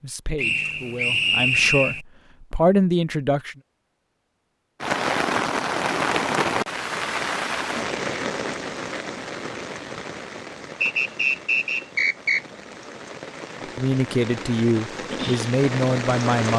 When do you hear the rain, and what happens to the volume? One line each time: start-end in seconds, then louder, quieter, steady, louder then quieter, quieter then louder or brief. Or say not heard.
4.8-16.5 quieter then louder.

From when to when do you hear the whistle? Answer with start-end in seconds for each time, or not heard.
0.3-2.0, 10.8-12.4.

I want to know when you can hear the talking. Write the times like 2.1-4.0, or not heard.
0.0-3.5, 13.8-16.5.